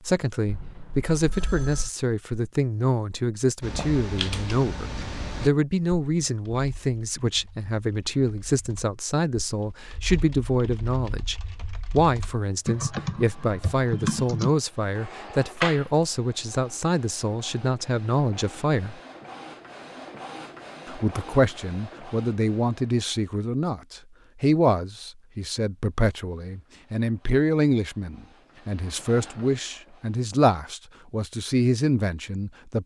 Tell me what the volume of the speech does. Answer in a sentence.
The loudness of the speech stays about the same.